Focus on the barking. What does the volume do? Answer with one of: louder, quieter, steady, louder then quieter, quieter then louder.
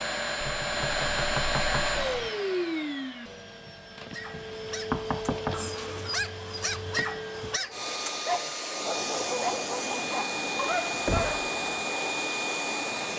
louder.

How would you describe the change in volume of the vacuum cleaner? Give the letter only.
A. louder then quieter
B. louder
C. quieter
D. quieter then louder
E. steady
D.